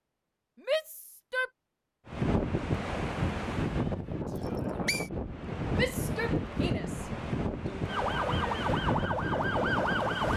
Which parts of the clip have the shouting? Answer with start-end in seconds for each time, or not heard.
0.6-1.5, 5.8-8.0.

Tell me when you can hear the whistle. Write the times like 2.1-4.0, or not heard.
4.3-5.1.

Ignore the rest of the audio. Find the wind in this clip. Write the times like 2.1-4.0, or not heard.
2.0-10.3.